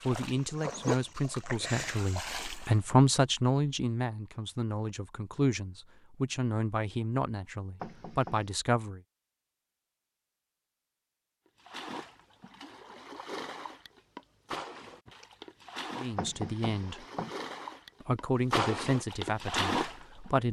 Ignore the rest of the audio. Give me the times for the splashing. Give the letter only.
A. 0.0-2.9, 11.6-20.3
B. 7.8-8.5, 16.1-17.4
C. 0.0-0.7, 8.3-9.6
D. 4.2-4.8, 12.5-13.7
A.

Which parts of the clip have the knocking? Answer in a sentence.
The knocking can be heard from 7.8 to 8.5 s and from 16.1 to 17.4 s.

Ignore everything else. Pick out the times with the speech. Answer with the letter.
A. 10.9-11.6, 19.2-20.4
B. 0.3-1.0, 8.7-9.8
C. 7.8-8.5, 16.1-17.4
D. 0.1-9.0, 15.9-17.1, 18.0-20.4
D.